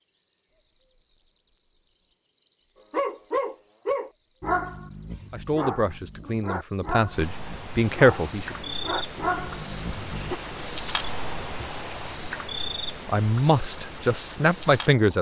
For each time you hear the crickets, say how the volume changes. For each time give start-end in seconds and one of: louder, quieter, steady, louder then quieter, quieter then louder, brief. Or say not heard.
0.0-15.1 louder.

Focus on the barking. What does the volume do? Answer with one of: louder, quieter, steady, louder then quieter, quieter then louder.
quieter then louder.